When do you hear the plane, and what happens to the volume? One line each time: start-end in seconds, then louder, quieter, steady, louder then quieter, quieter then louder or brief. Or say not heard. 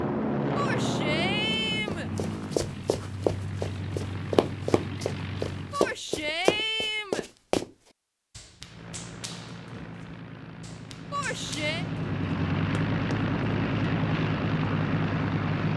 0.0-5.8 quieter
8.6-15.7 louder.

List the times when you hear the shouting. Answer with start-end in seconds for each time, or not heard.
0.6-2.1, 5.7-7.2, 11.1-11.8.